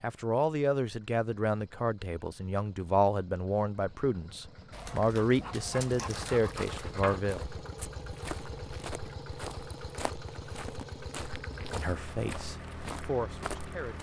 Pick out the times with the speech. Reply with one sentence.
The speech can be heard from 0.0 to 7.4 s and from 11.7 to 13.9 s.